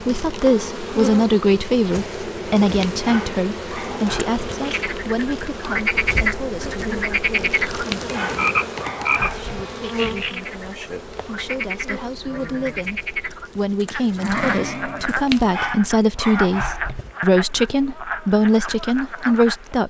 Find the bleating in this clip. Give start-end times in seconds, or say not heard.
12.2-15.2.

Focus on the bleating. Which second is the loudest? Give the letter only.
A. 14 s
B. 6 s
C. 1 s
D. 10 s
A.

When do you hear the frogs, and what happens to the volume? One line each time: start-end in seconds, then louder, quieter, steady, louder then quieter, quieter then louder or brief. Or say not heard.
4.7-19.8 quieter.